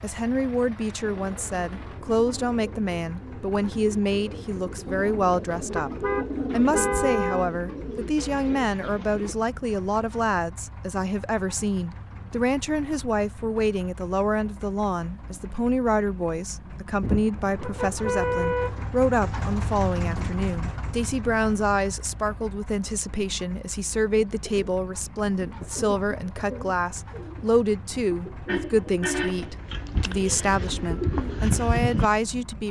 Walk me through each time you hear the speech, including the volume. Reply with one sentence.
The speech can be heard from 0.0 to 32.6 s, at a steady volume.